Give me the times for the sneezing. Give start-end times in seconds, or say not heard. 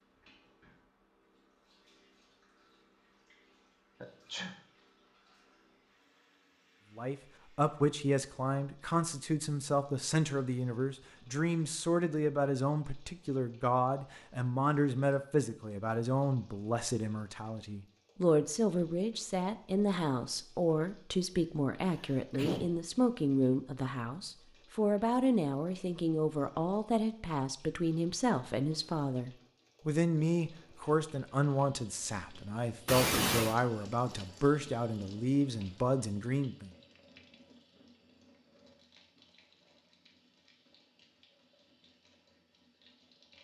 4.0-4.5, 21.9-22.7, 32.9-33.5.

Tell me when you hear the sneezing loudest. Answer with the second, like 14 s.
33 s.